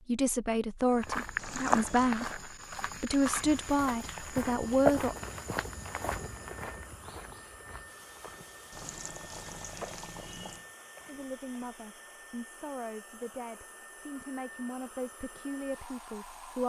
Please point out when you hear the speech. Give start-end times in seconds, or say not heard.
0.1-5.2, 11.1-16.6.